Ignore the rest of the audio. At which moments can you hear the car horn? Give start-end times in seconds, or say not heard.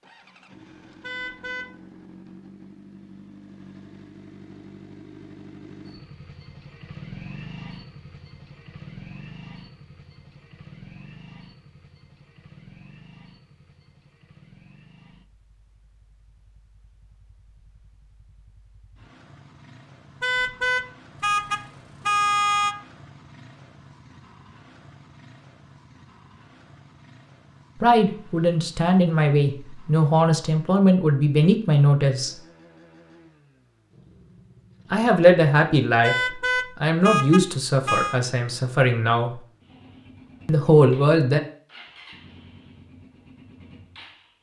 1.0-1.6, 20.2-22.8, 36.0-38.2.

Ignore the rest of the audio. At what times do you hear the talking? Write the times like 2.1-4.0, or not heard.
27.8-32.4, 34.9-39.4, 40.5-41.4.